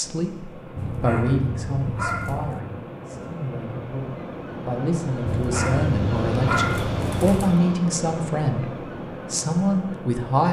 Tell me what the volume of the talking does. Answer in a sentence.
The volume of the talking goes down, then up.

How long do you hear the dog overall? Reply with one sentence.
You can hear the dog for 4 seconds altogether.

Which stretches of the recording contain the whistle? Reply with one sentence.
The whistle can't be heard in this clip.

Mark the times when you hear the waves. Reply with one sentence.
The waves can be heard from 0.0 to 10.4 s.